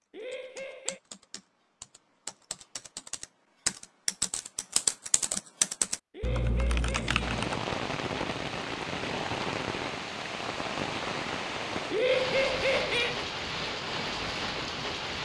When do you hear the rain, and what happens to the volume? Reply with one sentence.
You can hear the rain from 7.2 to 15.2 s, at a steady volume.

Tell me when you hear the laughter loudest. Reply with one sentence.
The volume of the laughter peaks at 12 seconds.